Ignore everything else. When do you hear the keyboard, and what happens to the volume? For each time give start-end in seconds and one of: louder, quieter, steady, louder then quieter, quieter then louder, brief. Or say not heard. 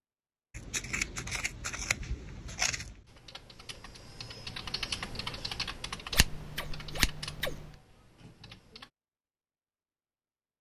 3.0-8.9 louder then quieter.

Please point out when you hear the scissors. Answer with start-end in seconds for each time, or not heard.
0.5-3.0, 6.1-7.5.